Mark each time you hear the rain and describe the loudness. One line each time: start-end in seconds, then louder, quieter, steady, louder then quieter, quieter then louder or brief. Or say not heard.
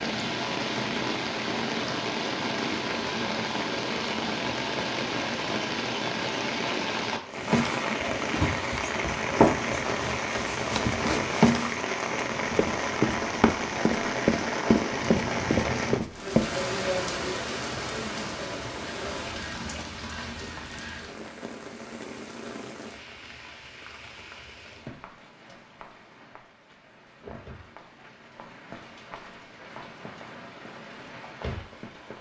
0.0-32.1 quieter.